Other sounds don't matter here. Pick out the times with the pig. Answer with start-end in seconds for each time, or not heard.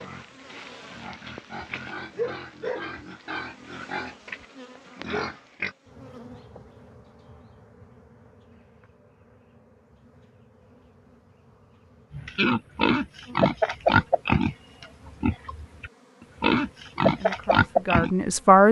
0.0-5.8, 12.1-18.1.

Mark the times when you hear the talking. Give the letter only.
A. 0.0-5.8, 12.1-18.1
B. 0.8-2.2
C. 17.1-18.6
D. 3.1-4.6
C.